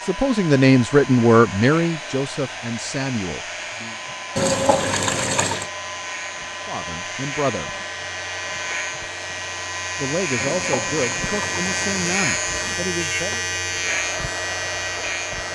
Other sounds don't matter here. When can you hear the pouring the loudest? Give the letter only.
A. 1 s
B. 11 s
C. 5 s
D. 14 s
C.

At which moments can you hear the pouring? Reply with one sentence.
You can hear the pouring from 4.3 to 5.7 s and from 10.3 to 12.2 s.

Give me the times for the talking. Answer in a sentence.
The talking can be heard from 0.0 to 4.0 s, from 6.7 to 7.7 s and from 9.9 to 13.4 s.